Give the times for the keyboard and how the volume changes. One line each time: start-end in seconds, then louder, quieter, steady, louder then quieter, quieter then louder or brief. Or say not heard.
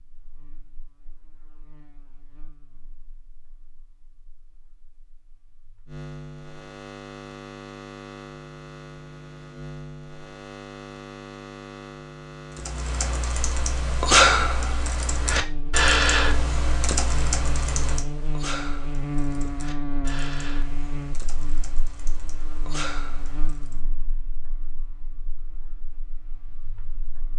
12.6-23.8 quieter.